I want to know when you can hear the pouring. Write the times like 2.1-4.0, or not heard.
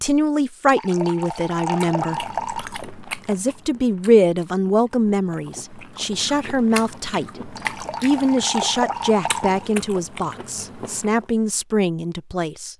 0.7-2.7, 7.5-9.7.